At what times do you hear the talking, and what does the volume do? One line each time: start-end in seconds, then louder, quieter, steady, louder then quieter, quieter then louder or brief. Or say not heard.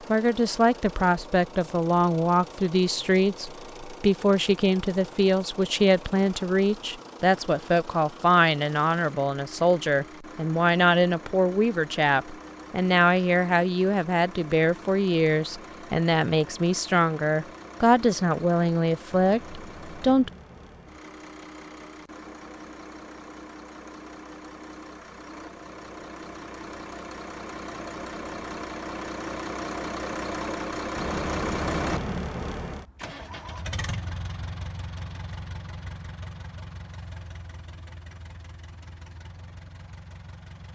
0.1-20.3 steady.